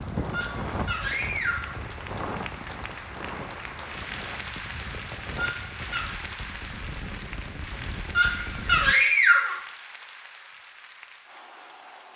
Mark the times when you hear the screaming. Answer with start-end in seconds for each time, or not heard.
0.3-1.8, 5.3-6.2, 8.2-9.6.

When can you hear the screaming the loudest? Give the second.
9 s.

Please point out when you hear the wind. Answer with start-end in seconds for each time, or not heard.
0.0-8.9.